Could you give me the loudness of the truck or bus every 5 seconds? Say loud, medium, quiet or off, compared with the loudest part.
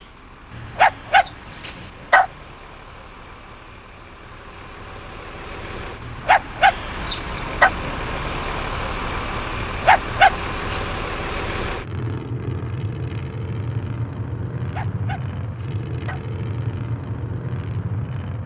quiet, loud, loud, loud.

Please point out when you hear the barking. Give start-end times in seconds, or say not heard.
0.5-2.3, 6.0-7.7, 9.7-10.9, 14.6-16.2.